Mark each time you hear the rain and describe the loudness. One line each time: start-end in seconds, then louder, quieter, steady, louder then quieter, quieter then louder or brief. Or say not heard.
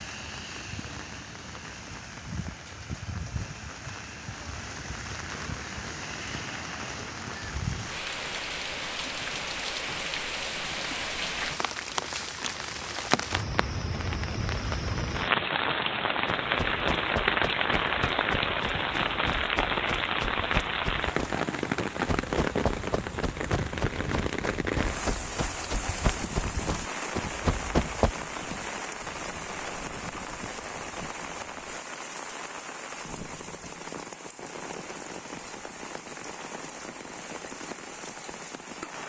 0.0-39.0 louder then quieter.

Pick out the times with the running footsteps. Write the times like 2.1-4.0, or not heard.
16.2-28.1.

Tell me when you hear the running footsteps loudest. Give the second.
28 s.